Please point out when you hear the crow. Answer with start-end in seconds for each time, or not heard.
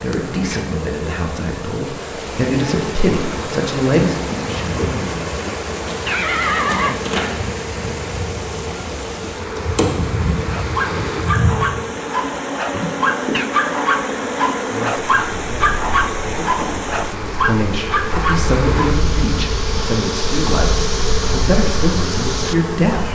not heard.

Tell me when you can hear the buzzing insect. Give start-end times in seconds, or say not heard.
0.1-23.1.